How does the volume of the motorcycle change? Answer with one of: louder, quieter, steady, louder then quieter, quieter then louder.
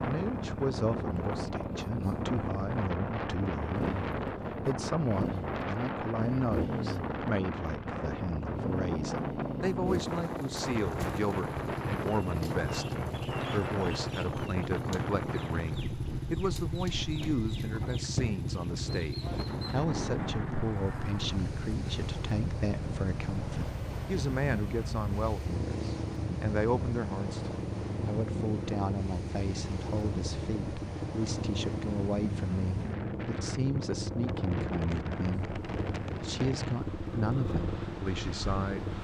steady.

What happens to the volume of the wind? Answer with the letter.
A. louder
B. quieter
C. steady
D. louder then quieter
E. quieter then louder
C.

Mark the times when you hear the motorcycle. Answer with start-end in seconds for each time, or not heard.
0.0-38.9.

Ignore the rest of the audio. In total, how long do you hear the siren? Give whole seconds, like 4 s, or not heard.
not heard.